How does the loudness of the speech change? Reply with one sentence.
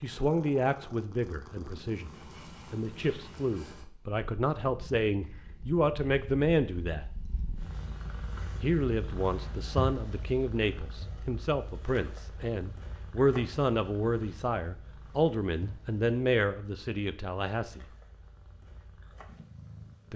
The loudness of the speech stays about the same.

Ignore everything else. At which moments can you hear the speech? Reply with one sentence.
You can hear the speech from 0.0 to 7.1 s and from 8.6 to 17.9 s.